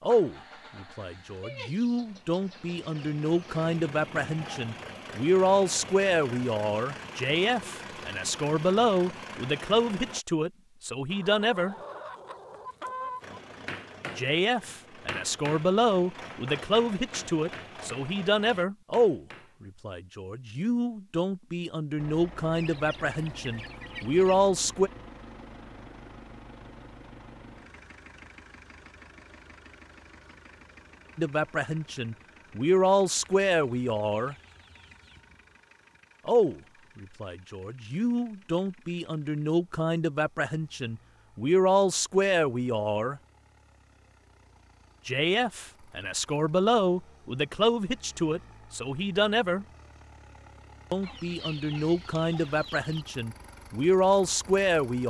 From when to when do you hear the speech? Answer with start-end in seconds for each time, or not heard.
0.0-11.8, 14.2-24.9, 31.1-34.4, 36.2-43.2, 45.0-49.6, 50.9-55.0.